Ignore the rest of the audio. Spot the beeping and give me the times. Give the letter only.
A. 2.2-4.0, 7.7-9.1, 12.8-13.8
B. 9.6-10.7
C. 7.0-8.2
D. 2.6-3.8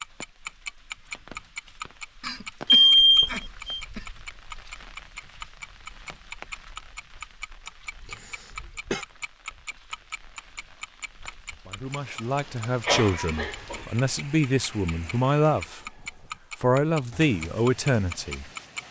D.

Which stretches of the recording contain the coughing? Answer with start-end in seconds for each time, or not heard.
2.2-4.0, 7.7-9.1, 12.8-13.8.